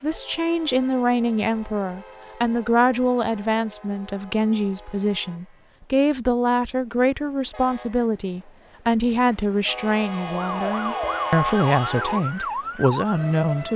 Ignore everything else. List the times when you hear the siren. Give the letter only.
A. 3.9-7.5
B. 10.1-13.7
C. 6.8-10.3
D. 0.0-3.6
B.